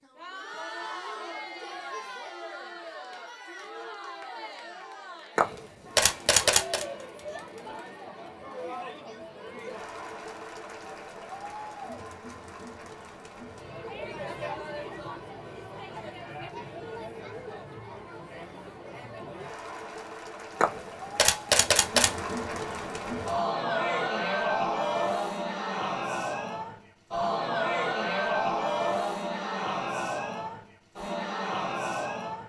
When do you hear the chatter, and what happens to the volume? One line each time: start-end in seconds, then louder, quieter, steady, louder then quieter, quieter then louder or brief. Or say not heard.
0.0-32.4 louder.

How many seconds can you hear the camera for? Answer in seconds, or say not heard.
3 s.